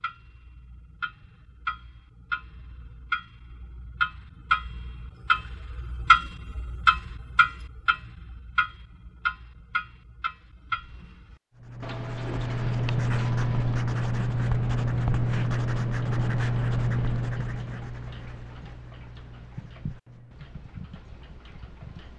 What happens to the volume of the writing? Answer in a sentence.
The volume of the writing goes down.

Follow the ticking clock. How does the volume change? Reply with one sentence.
The loudness of the ticking clock goes up, then down.